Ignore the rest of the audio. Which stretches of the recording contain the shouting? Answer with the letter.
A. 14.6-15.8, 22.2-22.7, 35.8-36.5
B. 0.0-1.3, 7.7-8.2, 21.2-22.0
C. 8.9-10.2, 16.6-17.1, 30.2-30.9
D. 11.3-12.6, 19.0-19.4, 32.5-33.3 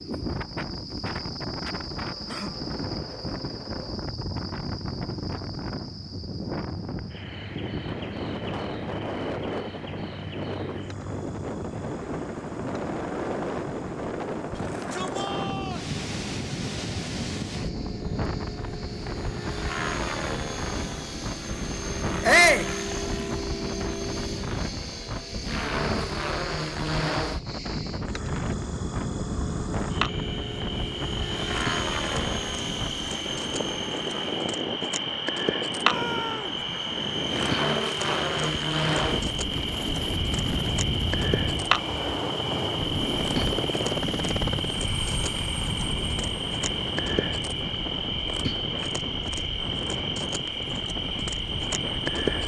A.